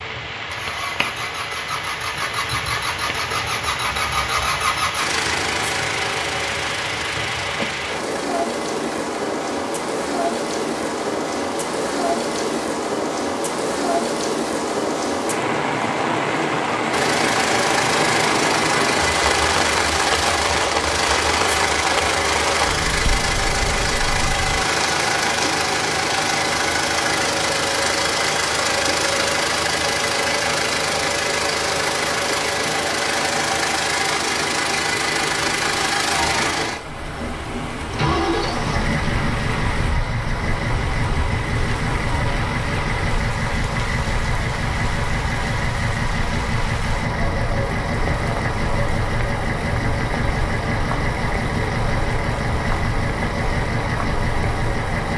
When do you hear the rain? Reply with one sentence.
You can hear the rain from 0.0 to 55.1 s.